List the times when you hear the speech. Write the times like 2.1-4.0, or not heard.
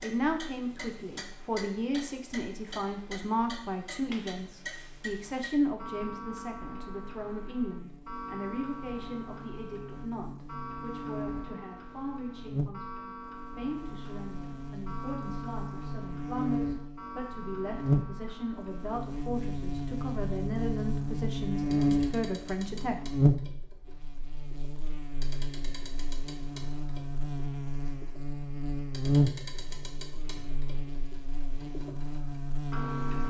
0.0-23.0.